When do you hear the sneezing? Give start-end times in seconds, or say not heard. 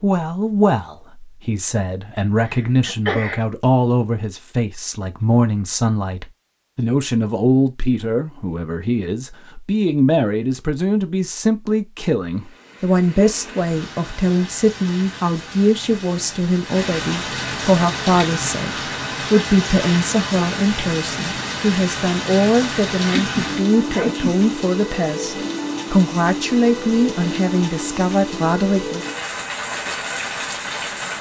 2.4-3.4, 23.0-24.4.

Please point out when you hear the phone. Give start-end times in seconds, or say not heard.
not heard.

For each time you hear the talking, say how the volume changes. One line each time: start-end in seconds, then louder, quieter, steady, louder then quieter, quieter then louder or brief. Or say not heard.
0.0-18.7 steady
19.3-29.1 steady.